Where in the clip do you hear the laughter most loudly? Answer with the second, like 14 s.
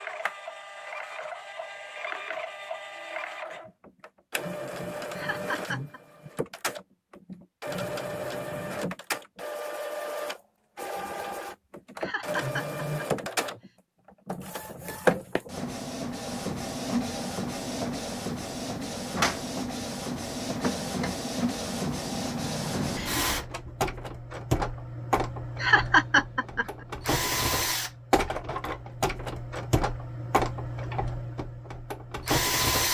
26 s.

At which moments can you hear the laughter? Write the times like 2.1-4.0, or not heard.
5.2-6.0, 12.0-13.6, 25.6-26.6.